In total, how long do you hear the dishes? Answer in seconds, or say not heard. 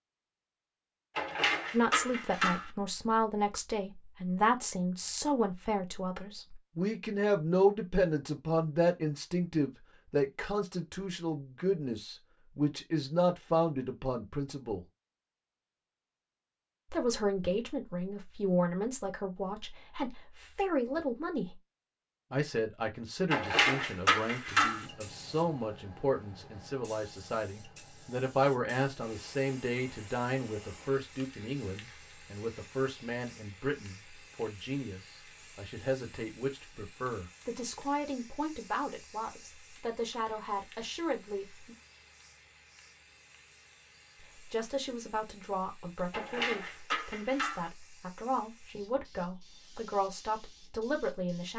5 s.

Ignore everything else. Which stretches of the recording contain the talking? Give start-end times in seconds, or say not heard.
1.7-14.8, 16.9-21.6, 22.3-41.8, 44.4-51.5.